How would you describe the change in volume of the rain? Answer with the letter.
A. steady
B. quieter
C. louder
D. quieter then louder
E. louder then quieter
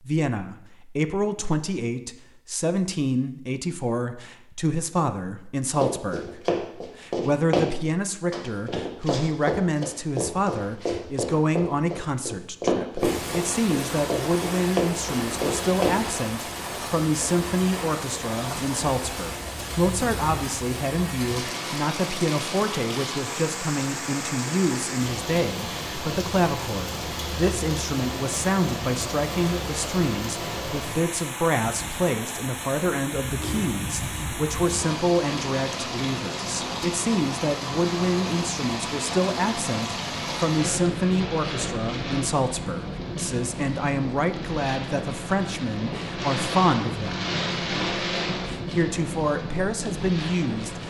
A.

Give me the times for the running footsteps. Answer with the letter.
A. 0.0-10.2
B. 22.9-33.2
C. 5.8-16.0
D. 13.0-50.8
C.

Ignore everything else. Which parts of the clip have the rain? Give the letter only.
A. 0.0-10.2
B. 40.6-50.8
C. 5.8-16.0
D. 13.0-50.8
D.